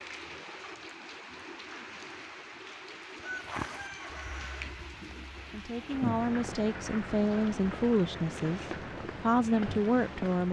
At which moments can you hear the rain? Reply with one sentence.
The rain can be heard from 0.0 to 10.4 s.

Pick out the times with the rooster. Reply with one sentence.
You can hear the rooster from 3.2 to 4.8 s.